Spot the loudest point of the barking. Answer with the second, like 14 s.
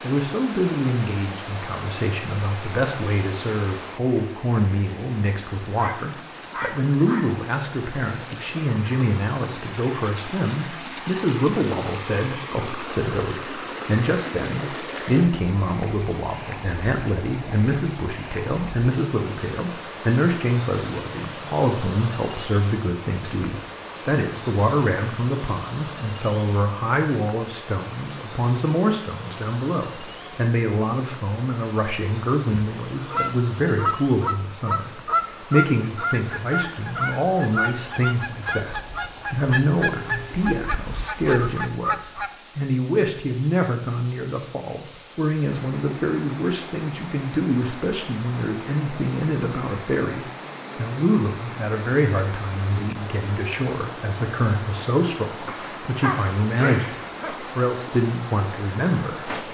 56 s.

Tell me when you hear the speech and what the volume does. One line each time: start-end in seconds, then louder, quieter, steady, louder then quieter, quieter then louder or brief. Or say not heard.
0.0-59.4 steady.